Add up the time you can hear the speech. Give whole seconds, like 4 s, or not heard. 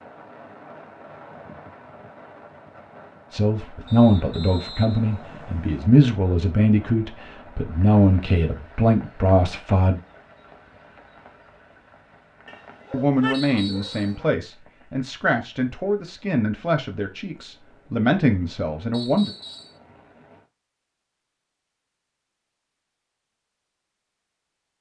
13 s.